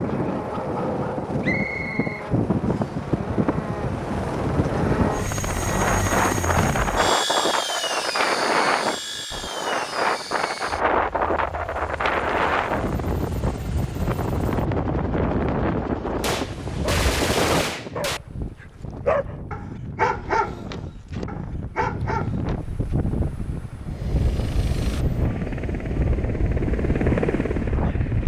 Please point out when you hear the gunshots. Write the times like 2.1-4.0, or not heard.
16.1-18.2.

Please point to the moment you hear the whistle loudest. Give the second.
2 s.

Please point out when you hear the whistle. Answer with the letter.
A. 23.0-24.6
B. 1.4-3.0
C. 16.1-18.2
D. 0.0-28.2
B.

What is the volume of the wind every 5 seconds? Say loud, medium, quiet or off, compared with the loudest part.
loud, loud, loud, loud, medium, loud.